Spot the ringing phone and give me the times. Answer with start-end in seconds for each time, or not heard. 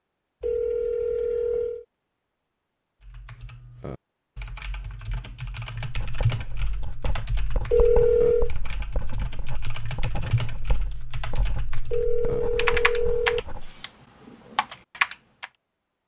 0.4-1.9, 7.7-8.5, 11.9-13.4.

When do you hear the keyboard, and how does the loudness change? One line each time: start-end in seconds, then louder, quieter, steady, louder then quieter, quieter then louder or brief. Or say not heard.
3.0-15.5 louder.